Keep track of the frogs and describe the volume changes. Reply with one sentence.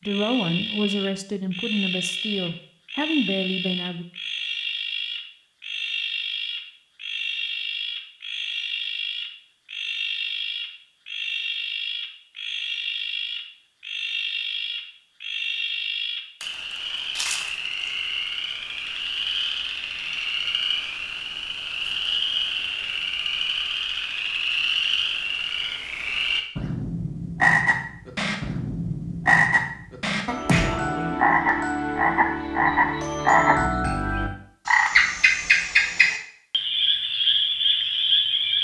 The loudness of the frogs goes up.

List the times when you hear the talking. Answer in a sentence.
The talking can be heard from 0.1 to 4.0 s.